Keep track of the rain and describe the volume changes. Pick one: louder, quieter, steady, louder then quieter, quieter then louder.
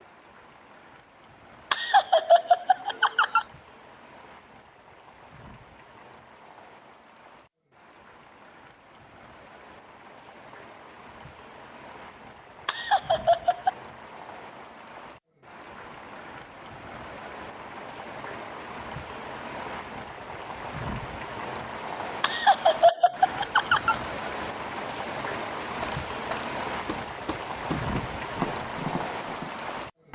louder.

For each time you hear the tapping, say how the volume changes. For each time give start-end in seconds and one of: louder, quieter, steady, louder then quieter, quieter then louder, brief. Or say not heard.
24.1-29.5 louder.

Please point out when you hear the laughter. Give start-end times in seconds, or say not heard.
1.7-3.5, 12.7-13.7, 22.2-23.9.